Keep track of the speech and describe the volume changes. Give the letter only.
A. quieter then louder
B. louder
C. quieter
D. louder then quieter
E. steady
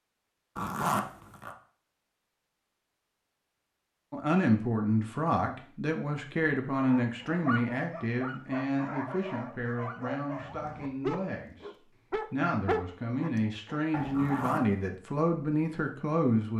A.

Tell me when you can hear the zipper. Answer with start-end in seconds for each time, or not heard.
0.6-1.6, 14.1-14.7.